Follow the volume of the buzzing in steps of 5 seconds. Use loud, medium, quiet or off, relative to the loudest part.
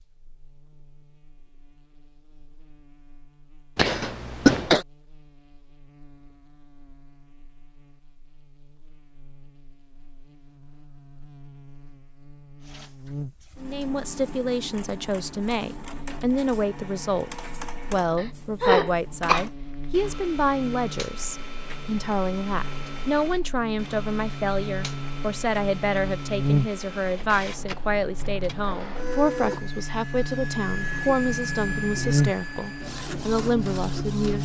quiet, quiet, quiet, quiet, medium, loud, loud.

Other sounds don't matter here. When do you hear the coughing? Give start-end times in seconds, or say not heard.
3.8-4.8, 18.1-19.4.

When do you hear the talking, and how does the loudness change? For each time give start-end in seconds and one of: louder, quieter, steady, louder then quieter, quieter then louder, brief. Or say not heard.
13.6-34.4 steady.